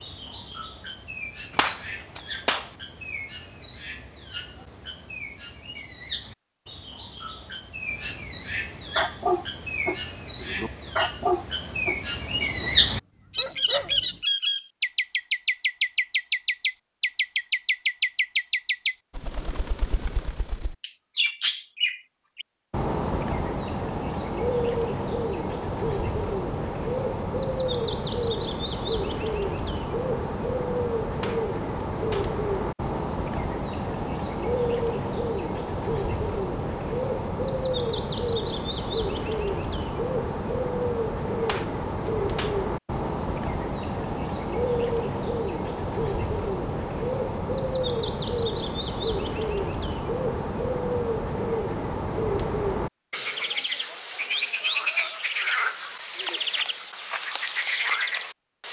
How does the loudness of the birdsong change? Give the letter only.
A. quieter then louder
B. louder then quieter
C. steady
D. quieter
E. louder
E.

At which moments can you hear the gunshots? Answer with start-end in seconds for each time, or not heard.
1.5-2.7, 31.1-32.4, 41.5-42.6.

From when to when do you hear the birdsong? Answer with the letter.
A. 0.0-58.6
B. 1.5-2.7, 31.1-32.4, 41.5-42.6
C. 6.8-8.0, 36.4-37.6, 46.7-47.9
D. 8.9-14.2
A.